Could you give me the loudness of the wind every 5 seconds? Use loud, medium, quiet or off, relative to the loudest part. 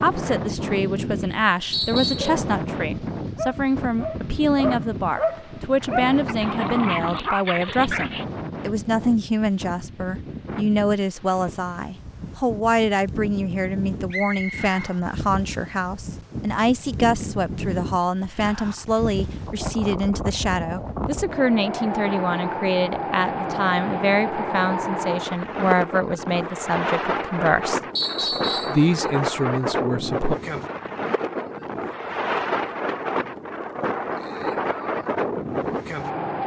loud, medium, medium, medium, loud, loud, loud, loud.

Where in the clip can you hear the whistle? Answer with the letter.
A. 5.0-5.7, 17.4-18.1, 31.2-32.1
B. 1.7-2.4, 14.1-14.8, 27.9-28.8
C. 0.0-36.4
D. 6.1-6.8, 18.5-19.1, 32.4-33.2
B.